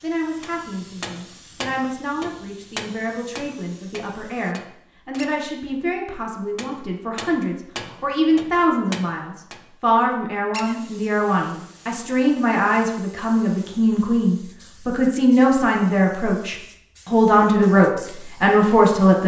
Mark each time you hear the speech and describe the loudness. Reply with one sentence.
The speech can be heard from 0.0 to 19.2 s, getting louder.